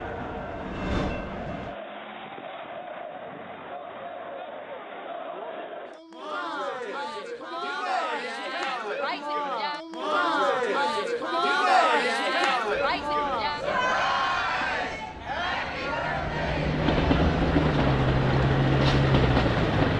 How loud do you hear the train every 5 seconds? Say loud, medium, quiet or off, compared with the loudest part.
medium, off, quiet, loud.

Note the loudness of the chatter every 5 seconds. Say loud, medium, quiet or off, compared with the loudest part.
quiet, medium, loud, medium.